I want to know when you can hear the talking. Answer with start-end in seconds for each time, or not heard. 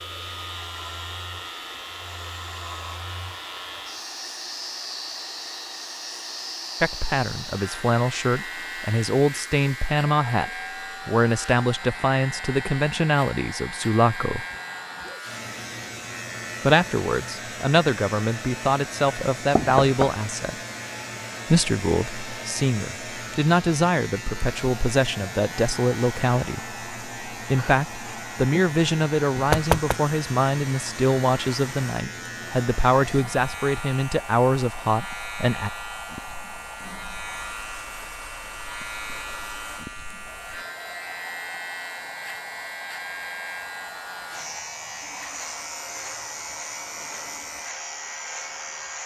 6.8-14.4, 16.6-20.6, 21.4-35.7.